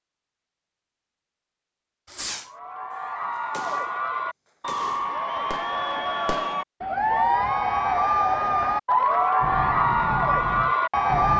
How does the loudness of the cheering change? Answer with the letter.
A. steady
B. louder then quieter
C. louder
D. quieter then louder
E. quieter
C.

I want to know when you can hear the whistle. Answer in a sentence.
You can't hear the whistle here.